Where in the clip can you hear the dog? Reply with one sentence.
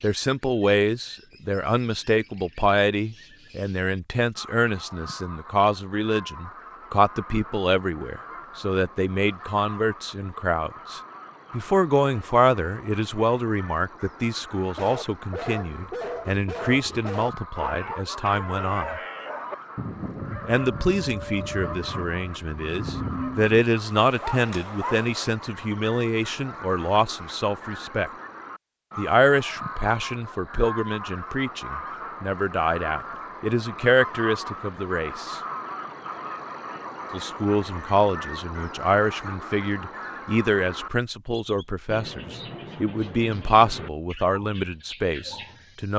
You can hear the dog from 14.8 to 25.3 s.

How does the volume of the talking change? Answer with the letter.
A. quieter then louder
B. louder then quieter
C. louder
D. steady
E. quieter
D.